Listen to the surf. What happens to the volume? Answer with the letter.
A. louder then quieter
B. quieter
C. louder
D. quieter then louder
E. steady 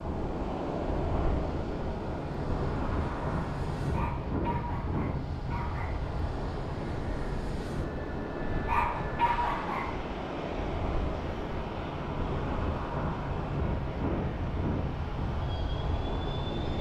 E.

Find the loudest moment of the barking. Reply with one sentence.
The volume of the barking peaks at 9 seconds.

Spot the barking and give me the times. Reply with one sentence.
You can hear the barking from 3.8 to 5.9 s and from 8.5 to 9.8 s.